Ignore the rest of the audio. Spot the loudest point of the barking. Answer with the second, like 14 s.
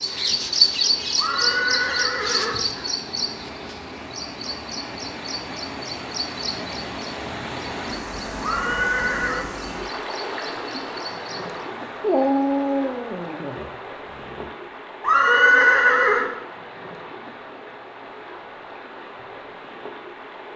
12 s.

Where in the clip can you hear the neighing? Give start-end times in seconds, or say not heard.
1.1-2.6, 8.4-9.4, 15.0-16.3.